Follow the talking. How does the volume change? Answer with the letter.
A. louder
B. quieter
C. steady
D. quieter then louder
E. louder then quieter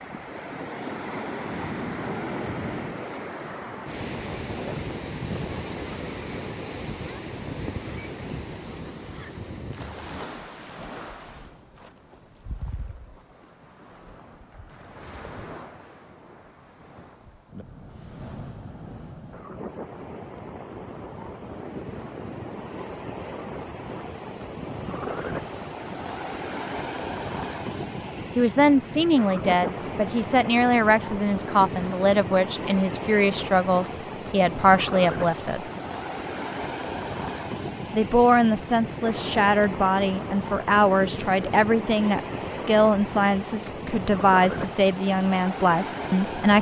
C.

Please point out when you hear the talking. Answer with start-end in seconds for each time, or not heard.
28.4-35.6, 37.9-46.5.